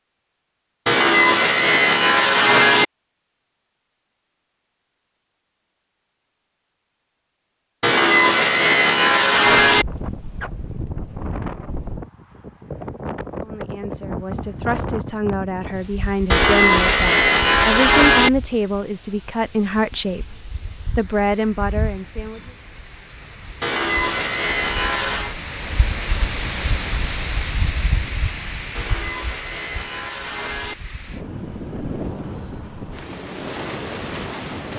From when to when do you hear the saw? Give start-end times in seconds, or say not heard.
0.8-2.9, 7.8-9.8, 16.3-18.3, 23.6-25.4, 28.8-30.8.